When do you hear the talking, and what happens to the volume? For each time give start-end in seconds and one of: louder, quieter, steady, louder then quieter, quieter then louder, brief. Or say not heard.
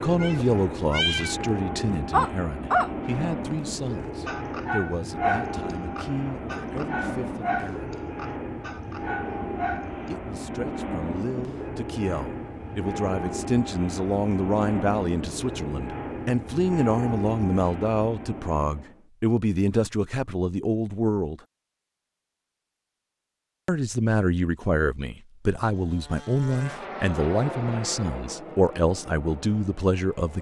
0.0-7.9 quieter
10.1-21.4 louder
23.6-30.3 steady.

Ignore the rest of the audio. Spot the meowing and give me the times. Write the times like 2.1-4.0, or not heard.
0.1-1.4.